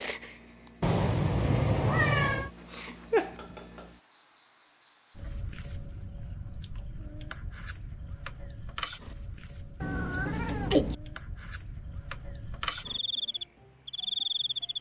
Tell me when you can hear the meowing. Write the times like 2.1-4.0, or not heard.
0.8-2.5, 9.8-10.9.